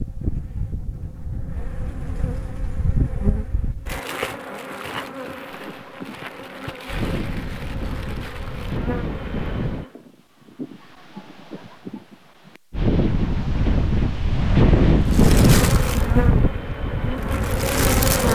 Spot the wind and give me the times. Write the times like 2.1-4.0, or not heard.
5.5-18.2.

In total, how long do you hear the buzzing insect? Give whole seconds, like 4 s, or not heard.
13 s.